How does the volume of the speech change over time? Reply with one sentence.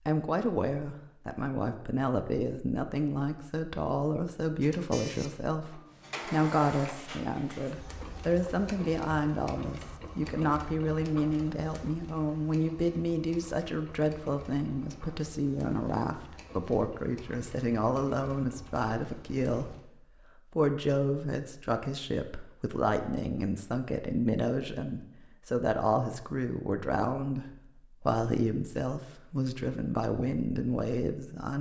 The volume of the speech stays about the same.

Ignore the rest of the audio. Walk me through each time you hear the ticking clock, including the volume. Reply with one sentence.
The ticking clock can't be heard in this clip.